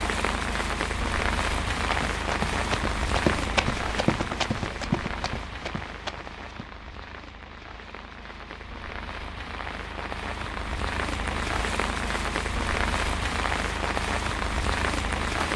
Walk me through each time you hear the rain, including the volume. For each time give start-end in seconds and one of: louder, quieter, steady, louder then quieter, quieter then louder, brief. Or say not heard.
0.0-15.5 quieter then louder.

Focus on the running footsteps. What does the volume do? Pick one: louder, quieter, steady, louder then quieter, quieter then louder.
louder then quieter.